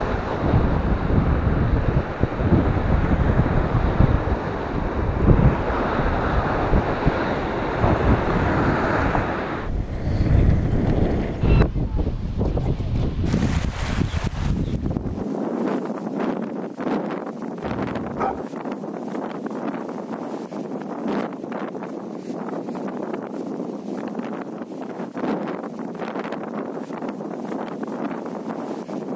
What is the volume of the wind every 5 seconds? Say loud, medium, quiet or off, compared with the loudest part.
loud, loud, loud, medium, medium, medium.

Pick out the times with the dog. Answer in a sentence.
The dog can be heard from 17.6 to 18.4 s.